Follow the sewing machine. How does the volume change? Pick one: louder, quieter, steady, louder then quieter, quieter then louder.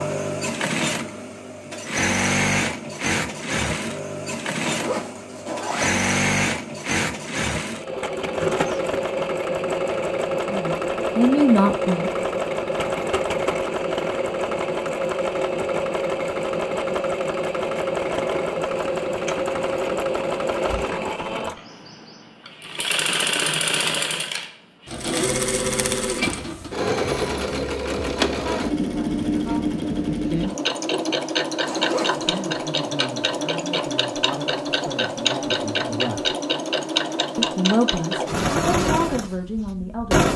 steady.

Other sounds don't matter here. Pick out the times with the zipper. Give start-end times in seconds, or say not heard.
4.6-6.0, 31.6-32.2.